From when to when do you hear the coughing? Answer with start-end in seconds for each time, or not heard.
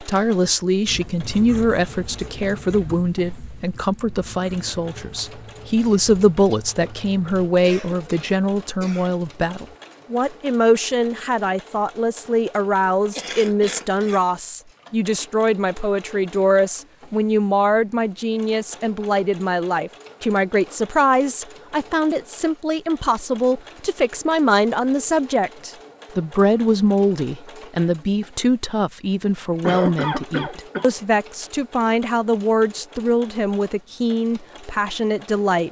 7.6-9.2, 13.2-14.2, 29.6-30.9.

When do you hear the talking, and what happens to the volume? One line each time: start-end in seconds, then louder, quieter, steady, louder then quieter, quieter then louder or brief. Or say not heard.
0.0-35.6 steady.